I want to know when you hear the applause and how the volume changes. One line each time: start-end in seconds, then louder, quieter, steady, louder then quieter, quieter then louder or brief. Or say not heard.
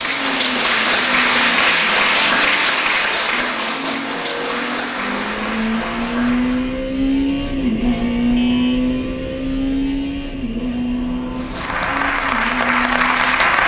0.0-6.9 quieter
11.3-13.6 brief.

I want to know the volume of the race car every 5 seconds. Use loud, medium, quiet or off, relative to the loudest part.
medium, loud, medium.